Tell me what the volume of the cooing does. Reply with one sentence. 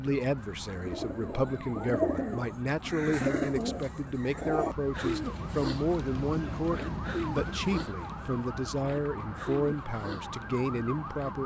The loudness of the cooing goes down.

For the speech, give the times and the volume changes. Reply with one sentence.
You can hear the speech from 0.0 to 11.4 s, at a steady volume.